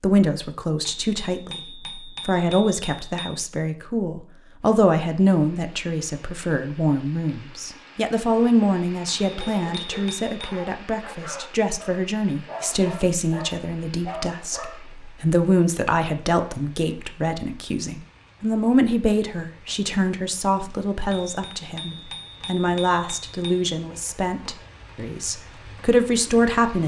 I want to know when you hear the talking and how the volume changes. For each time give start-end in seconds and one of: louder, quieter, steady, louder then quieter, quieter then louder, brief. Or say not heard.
0.0-26.8 steady.